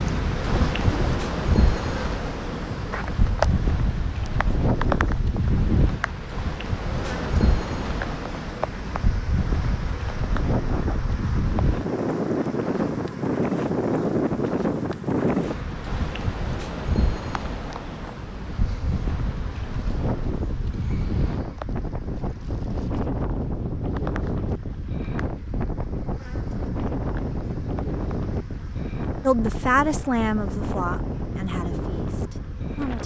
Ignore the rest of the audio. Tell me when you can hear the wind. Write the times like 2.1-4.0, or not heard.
0.0-33.0.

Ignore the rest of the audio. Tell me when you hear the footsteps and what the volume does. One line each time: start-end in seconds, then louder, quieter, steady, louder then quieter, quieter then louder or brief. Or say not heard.
not heard.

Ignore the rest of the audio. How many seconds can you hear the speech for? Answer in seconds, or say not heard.
4 s.